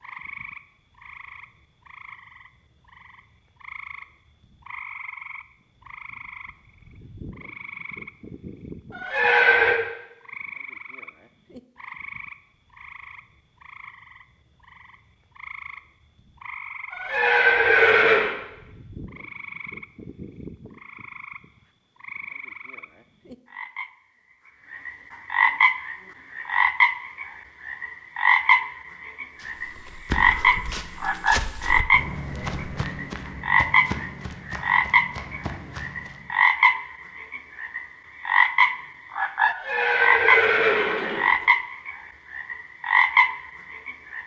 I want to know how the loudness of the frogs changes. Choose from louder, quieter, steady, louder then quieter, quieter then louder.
louder.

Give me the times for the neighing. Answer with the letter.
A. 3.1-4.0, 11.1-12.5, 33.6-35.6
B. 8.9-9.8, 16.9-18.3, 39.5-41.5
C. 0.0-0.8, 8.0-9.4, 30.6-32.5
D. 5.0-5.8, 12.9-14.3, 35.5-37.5
B.